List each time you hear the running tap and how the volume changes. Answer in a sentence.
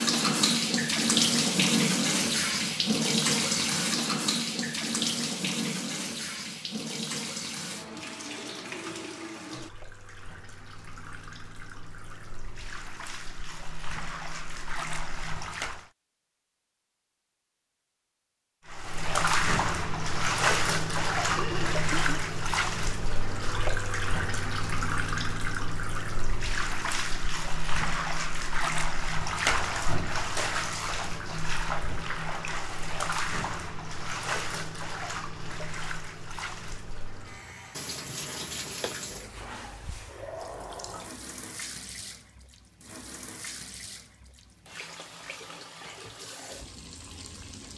The running tap can be heard from 0.0 to 15.8 s, getting quieter then louder; and from 18.6 to 47.7 s, getting quieter.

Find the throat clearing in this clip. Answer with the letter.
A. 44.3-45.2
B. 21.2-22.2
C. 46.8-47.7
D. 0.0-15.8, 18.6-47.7
B.